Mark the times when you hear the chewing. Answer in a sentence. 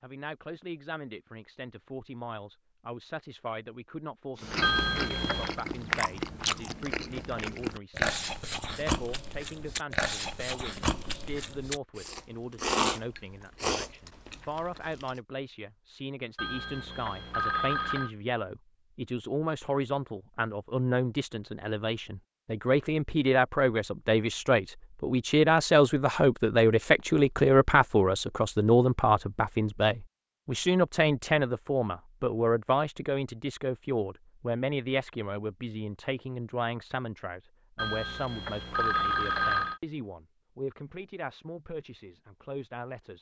The chewing can be heard from 4.3 to 15.1 s.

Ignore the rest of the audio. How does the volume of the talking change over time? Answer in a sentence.
The volume of the talking goes up, then down.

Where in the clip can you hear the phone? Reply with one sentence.
The phone can be heard from 4.6 to 5.6 s, from 16.4 to 18.1 s and from 37.8 to 39.8 s.